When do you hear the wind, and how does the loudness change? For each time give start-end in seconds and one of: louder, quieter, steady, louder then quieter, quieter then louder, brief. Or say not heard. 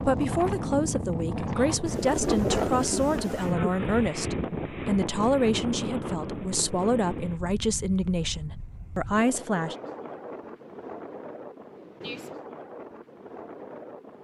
0.0-14.1 quieter.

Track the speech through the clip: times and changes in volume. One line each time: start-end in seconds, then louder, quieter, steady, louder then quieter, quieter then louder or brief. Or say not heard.
0.0-9.8 steady.